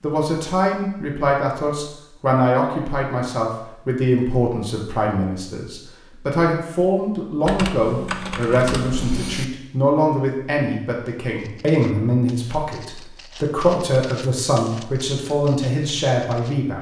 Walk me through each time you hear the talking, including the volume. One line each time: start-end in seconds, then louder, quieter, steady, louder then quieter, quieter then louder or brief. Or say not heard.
0.0-16.7 steady.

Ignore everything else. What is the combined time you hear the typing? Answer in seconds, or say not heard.
2 s.